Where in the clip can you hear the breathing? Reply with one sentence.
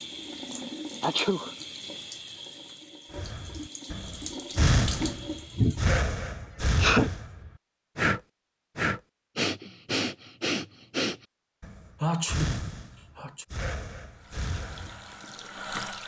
You can hear the breathing from 3.1 to 15.2 s.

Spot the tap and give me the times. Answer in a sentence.
The tap can be heard from 0.0 to 6.0 s and from 14.1 to 16.0 s.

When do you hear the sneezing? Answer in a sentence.
The sneezing can be heard from 0.5 to 1.5 s, from 5.5 to 7.1 s and from 12.0 to 13.4 s.